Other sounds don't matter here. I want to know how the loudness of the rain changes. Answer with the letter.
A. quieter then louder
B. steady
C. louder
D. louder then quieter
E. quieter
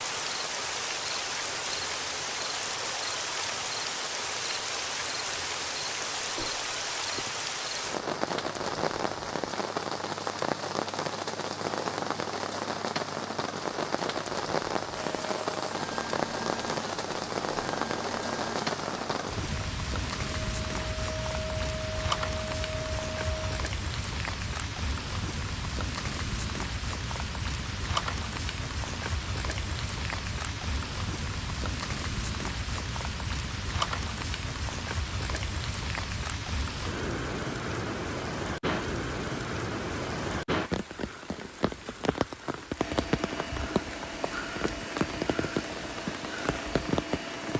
B.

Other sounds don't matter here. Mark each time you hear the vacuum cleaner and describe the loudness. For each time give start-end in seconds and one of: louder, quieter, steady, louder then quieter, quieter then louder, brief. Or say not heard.
14.9-23.6 steady
42.8-47.5 steady.